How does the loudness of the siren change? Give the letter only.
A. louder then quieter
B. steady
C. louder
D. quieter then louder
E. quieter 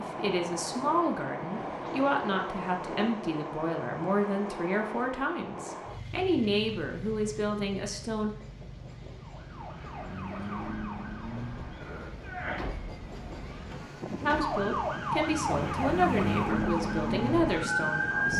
C.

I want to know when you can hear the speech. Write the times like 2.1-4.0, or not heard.
0.0-8.3, 14.2-18.3.